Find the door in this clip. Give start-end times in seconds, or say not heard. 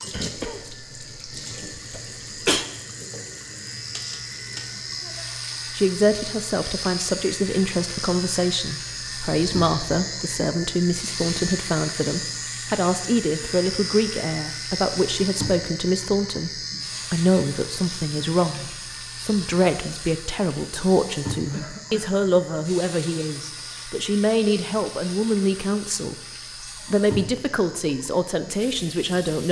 not heard.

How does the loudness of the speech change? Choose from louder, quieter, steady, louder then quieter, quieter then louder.
steady.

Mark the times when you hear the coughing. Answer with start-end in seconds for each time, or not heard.
0.1-2.6, 21.4-22.2.